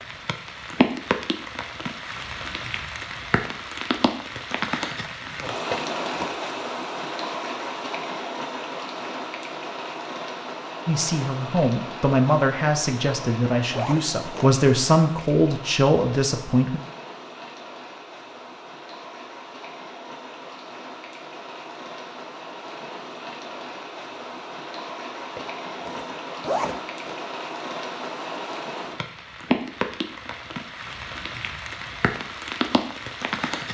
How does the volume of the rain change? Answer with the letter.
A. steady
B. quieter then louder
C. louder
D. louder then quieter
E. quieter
B.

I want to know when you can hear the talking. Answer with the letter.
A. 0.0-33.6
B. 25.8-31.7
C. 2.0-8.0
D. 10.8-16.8
D.